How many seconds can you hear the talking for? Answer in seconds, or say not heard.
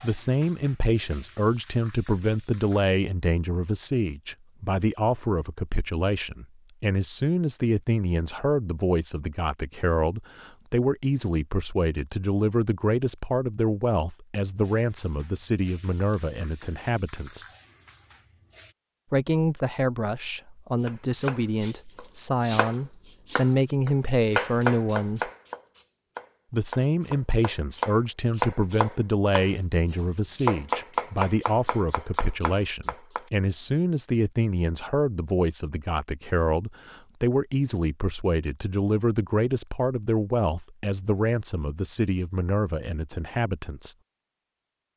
41 s.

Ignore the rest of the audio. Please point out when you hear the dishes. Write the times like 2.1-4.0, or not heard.
not heard.